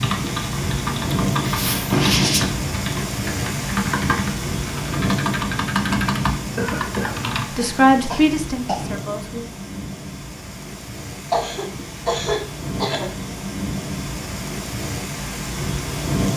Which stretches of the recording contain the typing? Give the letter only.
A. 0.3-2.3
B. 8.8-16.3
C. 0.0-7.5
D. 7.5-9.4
C.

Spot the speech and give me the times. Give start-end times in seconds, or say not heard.
7.5-9.4.